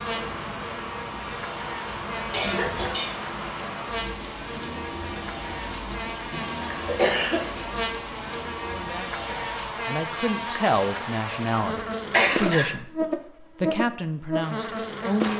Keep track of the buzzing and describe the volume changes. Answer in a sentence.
The loudness of the buzzing goes up.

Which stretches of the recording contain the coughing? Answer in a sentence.
The coughing can be heard from 2.3 to 3.3 s, from 6.3 to 7.7 s and from 12.1 to 12.7 s.